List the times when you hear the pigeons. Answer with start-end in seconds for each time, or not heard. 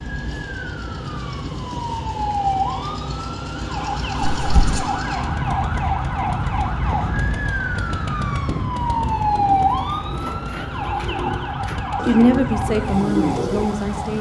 8.8-13.8.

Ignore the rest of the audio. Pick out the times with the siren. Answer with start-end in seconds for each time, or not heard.
0.0-14.1.